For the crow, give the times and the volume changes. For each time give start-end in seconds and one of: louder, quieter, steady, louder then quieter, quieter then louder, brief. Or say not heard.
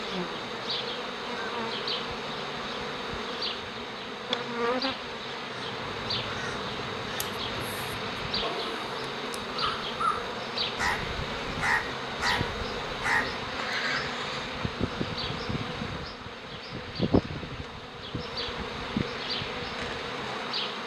5.5-14.5 louder.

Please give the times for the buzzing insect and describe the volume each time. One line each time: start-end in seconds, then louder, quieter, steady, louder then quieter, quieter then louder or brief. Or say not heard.
0.0-20.8 steady.